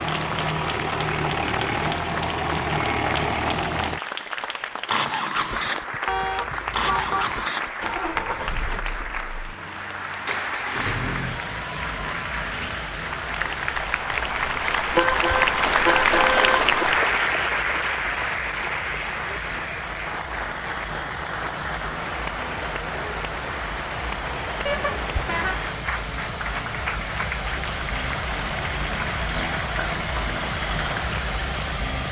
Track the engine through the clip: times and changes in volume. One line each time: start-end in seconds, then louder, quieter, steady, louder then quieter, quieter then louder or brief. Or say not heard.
0.0-32.0 quieter then louder.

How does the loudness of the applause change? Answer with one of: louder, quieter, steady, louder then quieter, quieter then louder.
louder then quieter.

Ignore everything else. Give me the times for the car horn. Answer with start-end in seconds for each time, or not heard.
6.0-7.3, 14.9-16.8, 24.6-25.6.